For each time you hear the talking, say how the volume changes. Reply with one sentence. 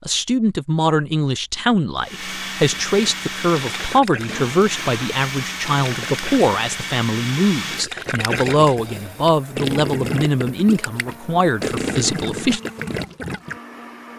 The talking can be heard from 0.1 to 12.6 s, at a steady volume.